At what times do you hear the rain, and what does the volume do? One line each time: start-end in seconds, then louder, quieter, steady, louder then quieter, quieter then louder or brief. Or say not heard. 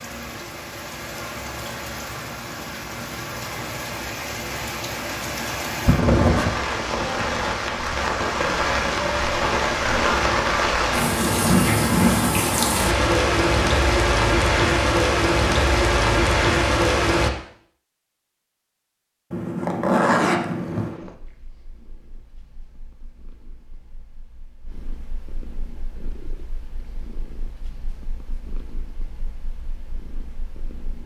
0.0-17.3 louder.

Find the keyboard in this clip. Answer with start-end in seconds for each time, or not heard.
not heard.